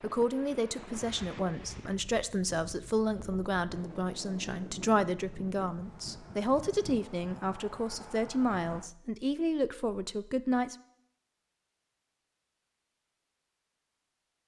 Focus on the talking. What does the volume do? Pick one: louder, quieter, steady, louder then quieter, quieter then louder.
steady.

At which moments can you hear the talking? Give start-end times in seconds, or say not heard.
0.0-10.8.